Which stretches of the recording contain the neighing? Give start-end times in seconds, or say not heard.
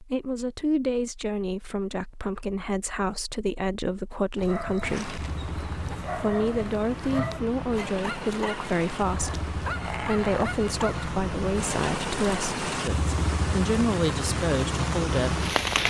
not heard.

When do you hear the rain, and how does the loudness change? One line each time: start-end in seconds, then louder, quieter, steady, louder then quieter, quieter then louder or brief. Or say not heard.
4.8-15.8 louder.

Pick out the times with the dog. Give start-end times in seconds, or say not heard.
4.3-11.1.